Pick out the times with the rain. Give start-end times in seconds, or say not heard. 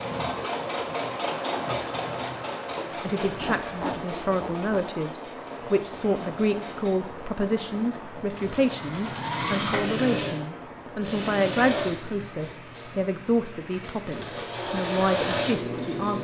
0.0-16.2.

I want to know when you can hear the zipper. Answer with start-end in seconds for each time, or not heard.
3.2-4.8.